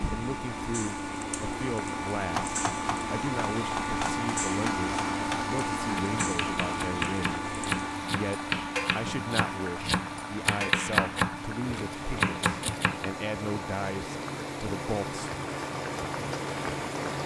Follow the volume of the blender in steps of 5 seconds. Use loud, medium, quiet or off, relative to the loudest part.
loud, loud, medium, medium.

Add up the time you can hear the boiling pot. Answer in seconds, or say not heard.
17 s.